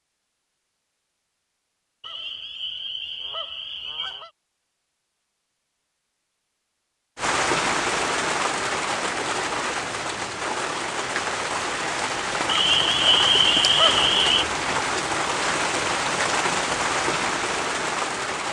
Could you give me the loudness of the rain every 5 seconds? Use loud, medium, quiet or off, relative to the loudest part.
off, loud, loud, loud.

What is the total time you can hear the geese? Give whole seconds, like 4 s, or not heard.
4 s.